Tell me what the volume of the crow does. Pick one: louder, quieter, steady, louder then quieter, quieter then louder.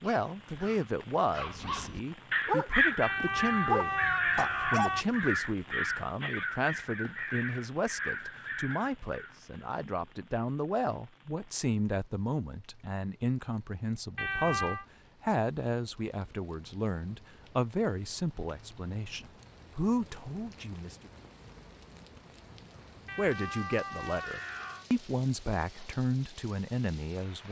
quieter.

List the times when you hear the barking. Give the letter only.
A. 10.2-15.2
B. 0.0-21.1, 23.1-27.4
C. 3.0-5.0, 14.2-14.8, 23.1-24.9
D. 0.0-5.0
D.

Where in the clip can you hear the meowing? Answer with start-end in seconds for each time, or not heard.
3.0-5.0, 14.2-14.8, 23.1-24.9.